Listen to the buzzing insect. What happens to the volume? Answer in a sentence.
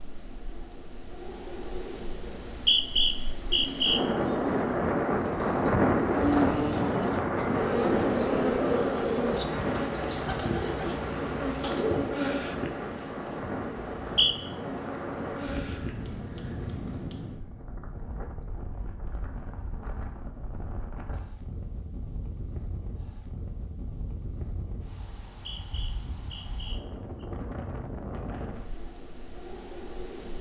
The volume of the buzzing insect goes down.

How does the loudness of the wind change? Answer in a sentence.
The loudness of the wind goes down.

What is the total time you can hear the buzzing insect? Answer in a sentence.
You can hear the buzzing insect for 11 seconds altogether.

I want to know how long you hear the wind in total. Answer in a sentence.
The wind can be heard for 30 seconds in total.